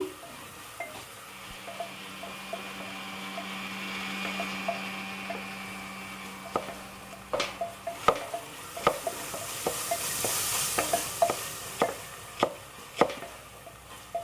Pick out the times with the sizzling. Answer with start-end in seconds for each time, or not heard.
0.0-14.2.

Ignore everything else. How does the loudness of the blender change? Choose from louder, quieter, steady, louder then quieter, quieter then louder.
louder then quieter.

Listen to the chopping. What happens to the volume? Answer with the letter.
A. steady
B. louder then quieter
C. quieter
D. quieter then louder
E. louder
D.